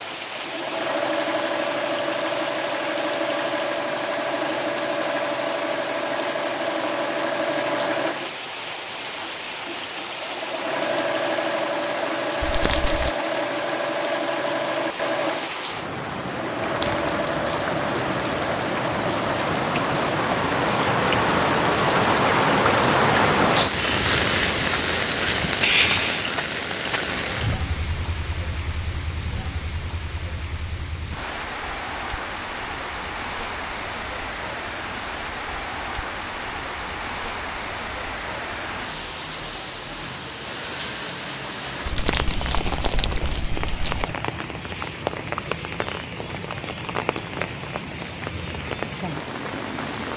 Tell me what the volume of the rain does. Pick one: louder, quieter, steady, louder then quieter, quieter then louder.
louder then quieter.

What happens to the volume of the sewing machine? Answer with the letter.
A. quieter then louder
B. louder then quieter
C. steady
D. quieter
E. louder
C.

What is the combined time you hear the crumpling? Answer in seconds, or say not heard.
4 s.